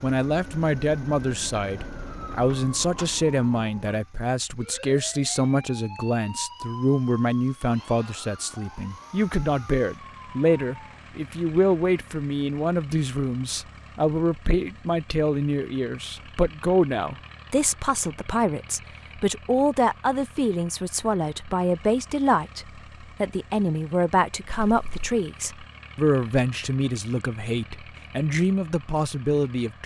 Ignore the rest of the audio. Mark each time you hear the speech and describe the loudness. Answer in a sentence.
You can hear the speech from 0.0 to 29.8 s, at a steady volume.